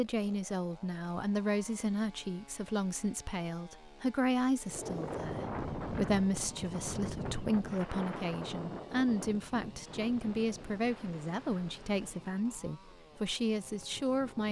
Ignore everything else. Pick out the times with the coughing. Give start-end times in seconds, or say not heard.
not heard.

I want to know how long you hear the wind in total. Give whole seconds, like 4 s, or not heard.
10 s.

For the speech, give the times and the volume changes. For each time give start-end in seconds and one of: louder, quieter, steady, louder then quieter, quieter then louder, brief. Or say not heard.
0.0-14.4 steady.